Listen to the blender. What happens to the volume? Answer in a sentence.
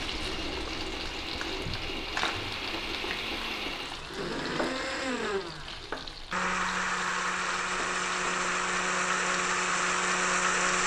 The loudness of the blender goes up.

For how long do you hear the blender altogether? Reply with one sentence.
The blender can be heard for 11 seconds in total.